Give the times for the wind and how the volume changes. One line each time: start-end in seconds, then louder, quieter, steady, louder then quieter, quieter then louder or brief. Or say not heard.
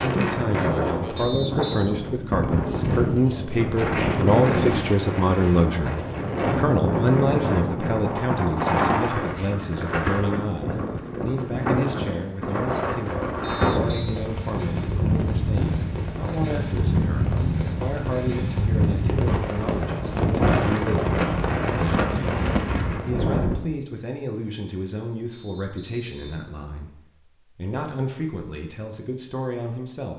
0.0-23.6 steady.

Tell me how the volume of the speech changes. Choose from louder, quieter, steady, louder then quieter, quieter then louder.
quieter.